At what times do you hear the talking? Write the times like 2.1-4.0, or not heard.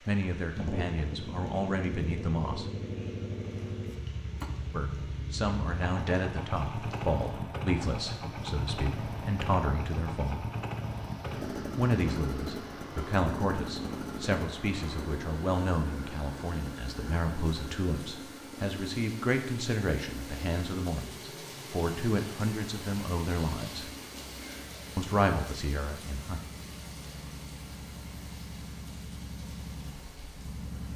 0.1-2.6, 4.7-10.4, 11.8-23.9, 24.9-26.4.